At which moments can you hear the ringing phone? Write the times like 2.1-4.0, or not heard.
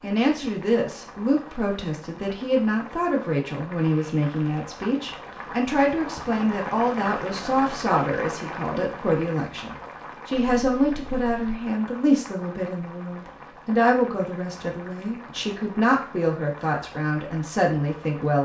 not heard.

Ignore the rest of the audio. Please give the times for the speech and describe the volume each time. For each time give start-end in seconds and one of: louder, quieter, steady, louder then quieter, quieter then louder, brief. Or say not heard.
0.0-18.3 steady.